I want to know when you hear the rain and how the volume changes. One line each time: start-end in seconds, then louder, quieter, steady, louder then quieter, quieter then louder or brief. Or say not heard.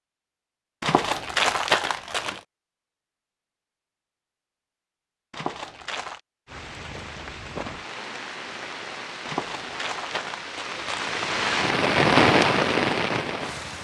6.5-13.7 louder.